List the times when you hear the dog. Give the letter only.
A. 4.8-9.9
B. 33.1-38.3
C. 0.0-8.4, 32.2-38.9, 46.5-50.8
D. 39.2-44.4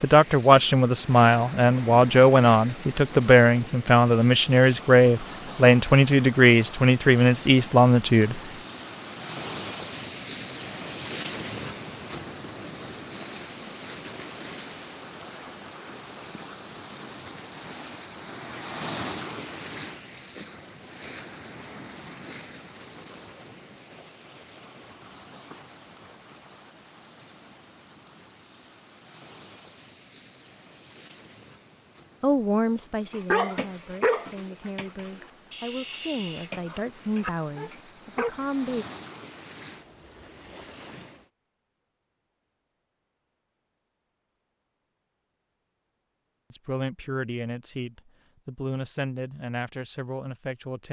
B.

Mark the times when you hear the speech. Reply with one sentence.
The speech can be heard from 0.0 to 8.4 s, from 32.2 to 38.9 s and from 46.5 to 50.8 s.